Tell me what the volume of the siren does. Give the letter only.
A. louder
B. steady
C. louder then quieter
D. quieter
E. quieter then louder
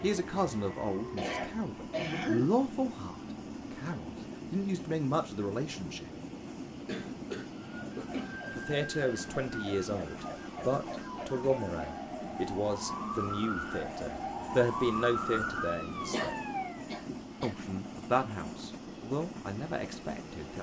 A.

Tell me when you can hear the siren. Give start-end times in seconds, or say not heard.
7.7-16.9.